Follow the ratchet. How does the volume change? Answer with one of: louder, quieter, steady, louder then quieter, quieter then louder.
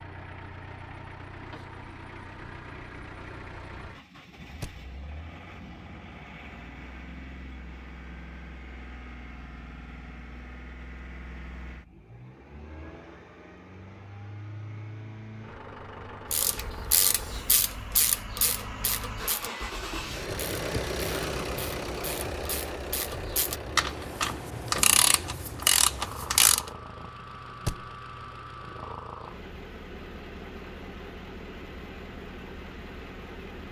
quieter then louder.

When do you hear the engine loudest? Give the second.
21 s.